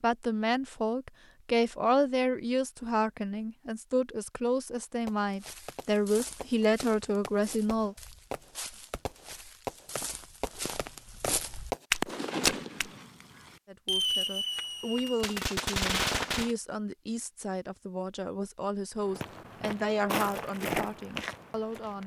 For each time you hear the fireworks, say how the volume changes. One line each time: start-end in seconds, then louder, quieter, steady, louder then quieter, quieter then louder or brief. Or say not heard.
5.0-16.5 louder.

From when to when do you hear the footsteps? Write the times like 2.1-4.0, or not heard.
5.2-12.9, 19.1-22.0.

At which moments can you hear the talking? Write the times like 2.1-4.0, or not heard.
0.0-8.0, 13.7-22.0.